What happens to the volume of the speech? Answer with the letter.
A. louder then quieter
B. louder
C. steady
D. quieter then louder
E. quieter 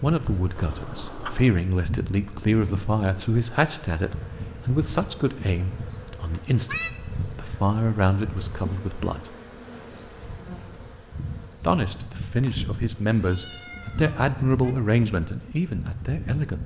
C.